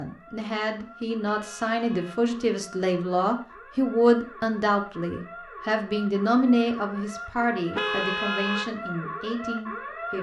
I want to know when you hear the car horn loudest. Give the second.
8 s.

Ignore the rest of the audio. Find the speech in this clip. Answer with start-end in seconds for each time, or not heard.
0.0-10.1.